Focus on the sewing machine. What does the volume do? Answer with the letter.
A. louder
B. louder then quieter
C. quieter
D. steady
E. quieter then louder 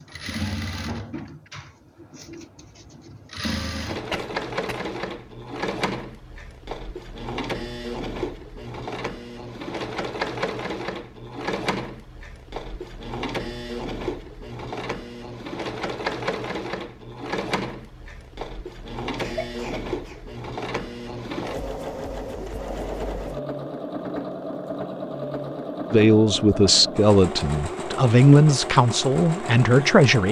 D.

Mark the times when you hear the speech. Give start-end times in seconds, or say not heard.
25.9-30.2.